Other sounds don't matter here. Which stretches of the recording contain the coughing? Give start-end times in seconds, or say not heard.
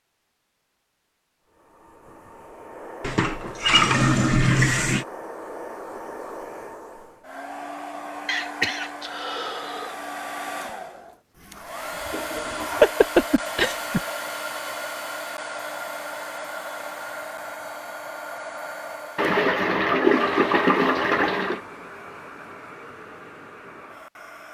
8.2-9.9, 12.3-14.0.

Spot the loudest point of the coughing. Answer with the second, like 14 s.
13 s.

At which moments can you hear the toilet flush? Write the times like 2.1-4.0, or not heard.
3.0-5.0, 11.3-12.9, 19.1-21.6.